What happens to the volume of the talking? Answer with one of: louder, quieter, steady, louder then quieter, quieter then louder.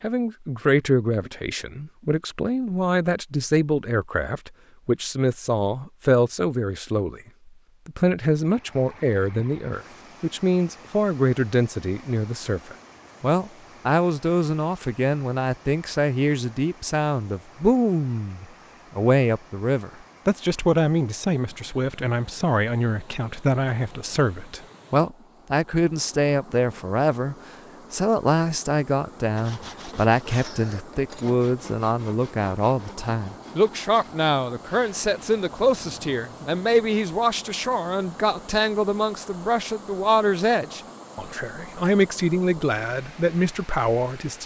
steady.